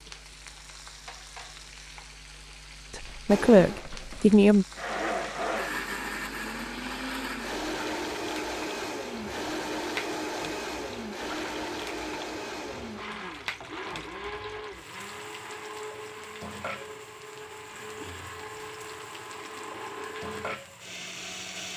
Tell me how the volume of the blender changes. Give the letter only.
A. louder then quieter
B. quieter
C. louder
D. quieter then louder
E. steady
B.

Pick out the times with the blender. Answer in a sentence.
You can hear the blender from 3.2 to 21.7 s.